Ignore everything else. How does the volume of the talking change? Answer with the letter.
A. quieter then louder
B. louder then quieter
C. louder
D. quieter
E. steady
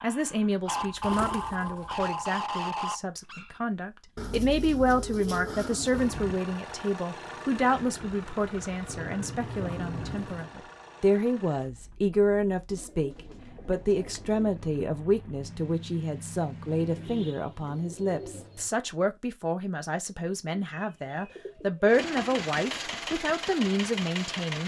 E.